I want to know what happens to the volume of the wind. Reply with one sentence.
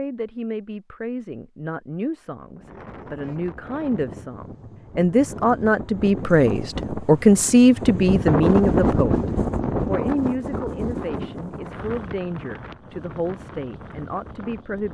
The volume of the wind goes up, then down.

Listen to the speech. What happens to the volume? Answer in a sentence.
The volume of the speech goes up, then down.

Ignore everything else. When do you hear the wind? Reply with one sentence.
You can hear the wind from 2.4 to 14.9 s.